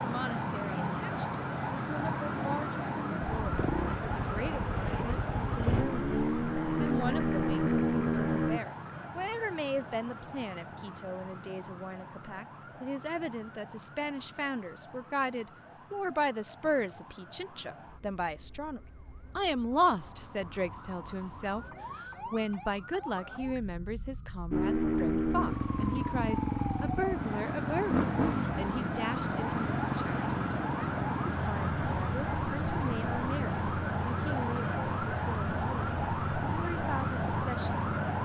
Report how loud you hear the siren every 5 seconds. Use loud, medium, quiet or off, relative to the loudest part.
loud, medium, quiet, quiet, quiet, loud, loud, loud.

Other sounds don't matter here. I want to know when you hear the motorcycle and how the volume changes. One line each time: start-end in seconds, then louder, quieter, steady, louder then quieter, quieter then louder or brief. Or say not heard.
3.3-8.6 louder
24.5-38.2 quieter.